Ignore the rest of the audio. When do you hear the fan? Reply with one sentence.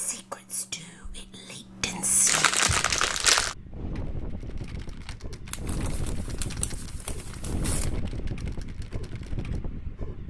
The fan can be heard from 2.6 to 10.2 s.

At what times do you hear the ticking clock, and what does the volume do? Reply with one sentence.
The ticking clock can't be heard in this clip.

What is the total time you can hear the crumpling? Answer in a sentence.
The crumpling can be heard for 4 seconds in total.